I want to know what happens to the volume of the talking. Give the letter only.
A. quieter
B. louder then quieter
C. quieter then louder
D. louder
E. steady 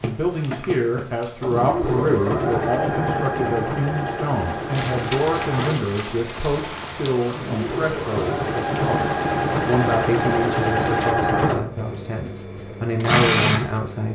E.